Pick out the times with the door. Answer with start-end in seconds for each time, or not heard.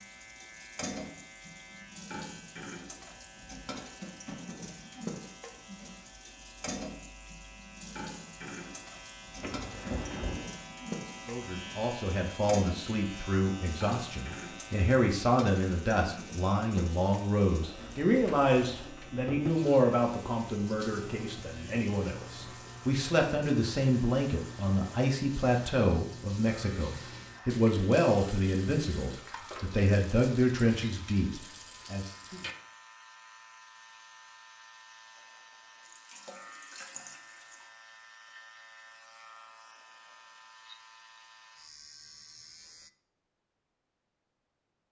9.4-10.4.